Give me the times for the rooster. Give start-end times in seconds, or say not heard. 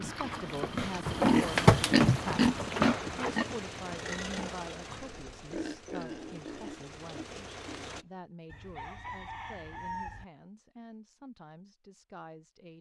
8.4-10.2.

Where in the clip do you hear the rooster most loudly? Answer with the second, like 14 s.
10 s.